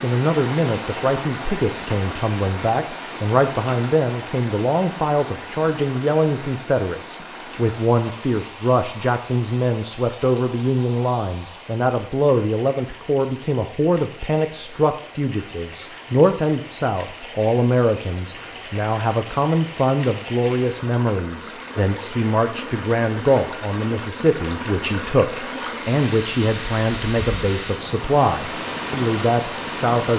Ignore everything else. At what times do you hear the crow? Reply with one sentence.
The crow can't be heard in this clip.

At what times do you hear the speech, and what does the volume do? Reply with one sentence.
The speech can be heard from 0.0 to 30.1 s, at a steady volume.